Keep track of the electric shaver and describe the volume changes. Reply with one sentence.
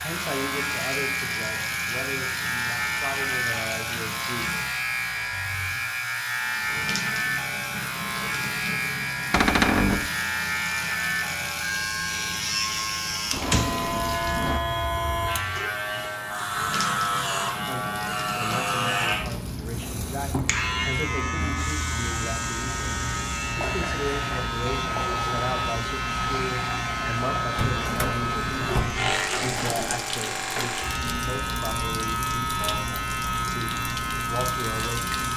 The volume of the electric shaver stays about the same.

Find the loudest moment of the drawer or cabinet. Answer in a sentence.
The volume of the drawer or cabinet peaks at 10 seconds.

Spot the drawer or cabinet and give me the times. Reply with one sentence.
You can hear the drawer or cabinet from 9.3 to 10.1 s, from 13.3 to 14.6 s and from 27.6 to 30.1 s.